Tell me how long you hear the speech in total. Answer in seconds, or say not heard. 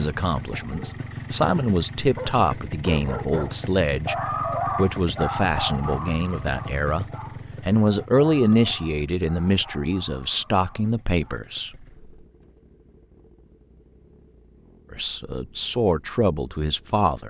14 s.